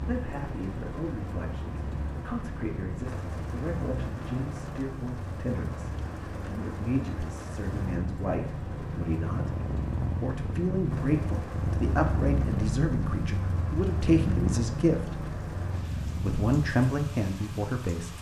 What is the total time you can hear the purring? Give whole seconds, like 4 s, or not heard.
18 s.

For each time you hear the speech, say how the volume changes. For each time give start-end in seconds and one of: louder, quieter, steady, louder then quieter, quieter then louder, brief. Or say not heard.
0.0-15.2 louder
16.1-18.1 brief.